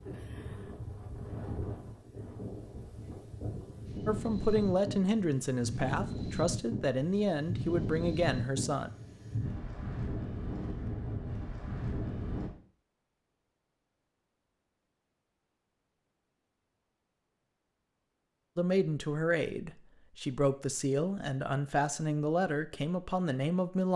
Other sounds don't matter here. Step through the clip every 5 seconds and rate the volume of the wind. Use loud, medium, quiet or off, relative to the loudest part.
loud, loud, loud, off, off.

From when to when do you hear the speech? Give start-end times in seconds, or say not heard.
4.0-8.9, 18.6-23.9.